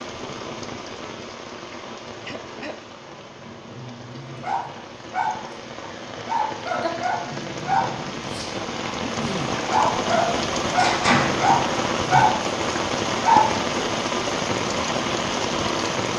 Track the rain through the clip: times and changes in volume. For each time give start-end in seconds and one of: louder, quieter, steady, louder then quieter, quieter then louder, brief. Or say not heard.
0.0-16.1 louder.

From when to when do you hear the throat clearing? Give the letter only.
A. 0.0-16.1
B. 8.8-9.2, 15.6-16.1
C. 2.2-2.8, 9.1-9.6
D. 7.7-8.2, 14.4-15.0
C.